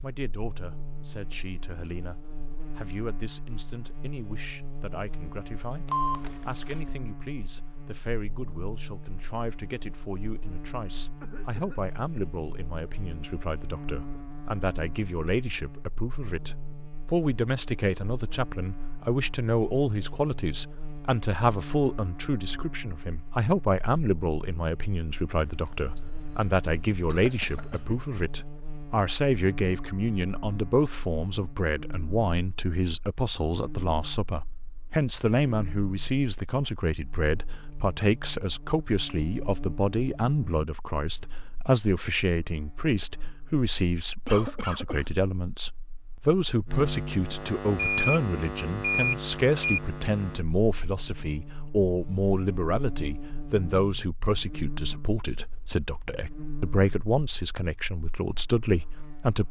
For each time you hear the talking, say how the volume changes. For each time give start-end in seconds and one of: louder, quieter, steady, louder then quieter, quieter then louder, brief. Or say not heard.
0.0-59.4 louder.